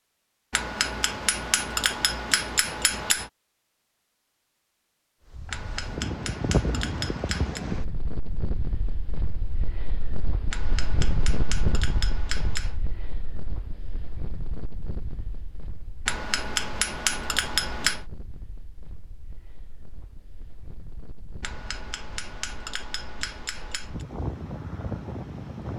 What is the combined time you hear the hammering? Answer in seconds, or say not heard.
12 s.